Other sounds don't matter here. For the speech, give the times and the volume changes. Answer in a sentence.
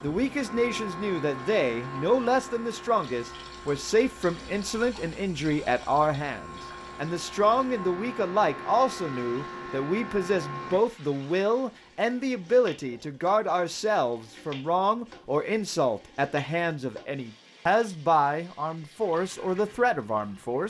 The speech can be heard from 0.0 to 20.6 s, at a steady volume.